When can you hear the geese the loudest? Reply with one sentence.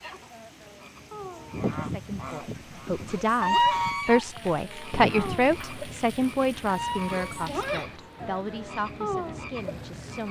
The loudest moment of the geese is at 4 seconds.